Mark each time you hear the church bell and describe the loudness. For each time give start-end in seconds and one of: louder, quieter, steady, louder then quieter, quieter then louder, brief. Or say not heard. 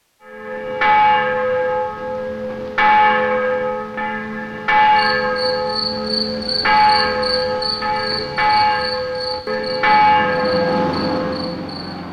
0.2-11.7 steady.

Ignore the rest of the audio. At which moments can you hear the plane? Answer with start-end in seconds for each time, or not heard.
9.6-12.0.